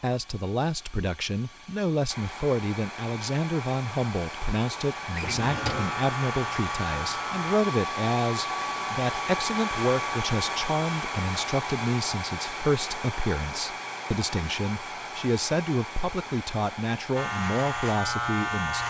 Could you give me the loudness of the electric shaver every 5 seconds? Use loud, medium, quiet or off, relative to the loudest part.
off, medium, off, loud.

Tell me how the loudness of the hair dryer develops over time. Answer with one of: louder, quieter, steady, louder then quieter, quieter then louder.
louder then quieter.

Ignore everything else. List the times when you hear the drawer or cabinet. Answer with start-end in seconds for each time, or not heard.
5.1-6.0.